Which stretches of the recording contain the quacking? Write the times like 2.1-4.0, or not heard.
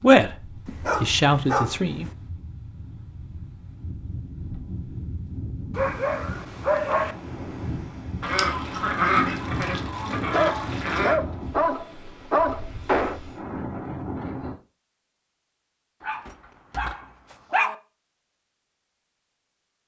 8.2-11.2.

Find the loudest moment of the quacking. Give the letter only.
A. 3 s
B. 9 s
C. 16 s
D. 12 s
B.